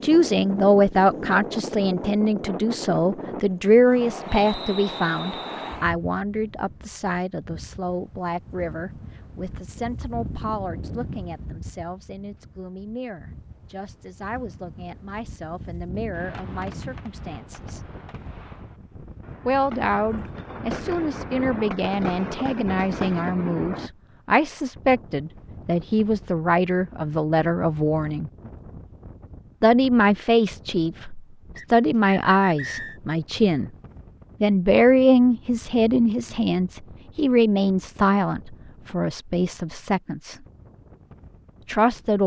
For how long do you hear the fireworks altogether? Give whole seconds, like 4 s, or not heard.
8 s.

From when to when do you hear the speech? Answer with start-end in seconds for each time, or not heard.
0.0-17.8, 19.4-28.3, 29.6-33.7, 34.4-40.4, 41.6-42.2.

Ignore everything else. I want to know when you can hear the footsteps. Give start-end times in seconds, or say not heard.
not heard.